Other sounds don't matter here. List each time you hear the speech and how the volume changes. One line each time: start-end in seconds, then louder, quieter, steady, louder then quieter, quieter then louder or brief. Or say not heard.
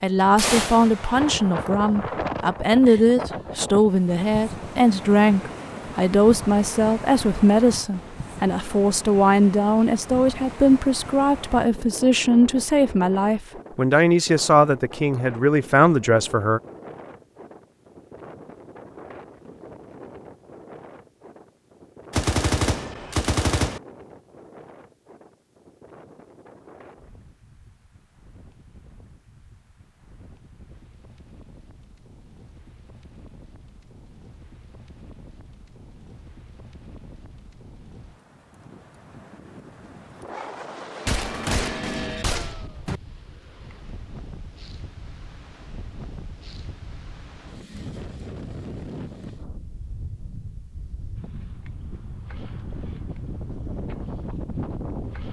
0.0-16.6 steady.